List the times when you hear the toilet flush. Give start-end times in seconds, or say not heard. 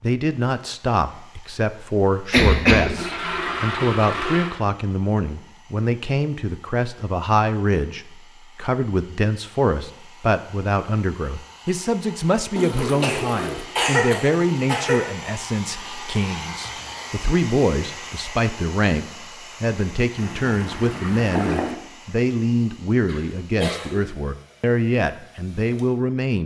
3.0-4.5, 12.6-13.7, 20.1-21.8.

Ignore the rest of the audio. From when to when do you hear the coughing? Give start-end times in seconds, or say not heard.
2.1-2.9, 13.0-15.0, 23.1-24.0.